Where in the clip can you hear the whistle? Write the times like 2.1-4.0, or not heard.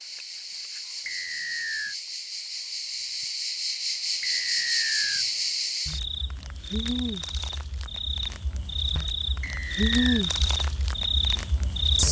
1.1-1.9, 4.2-5.2, 9.4-10.2.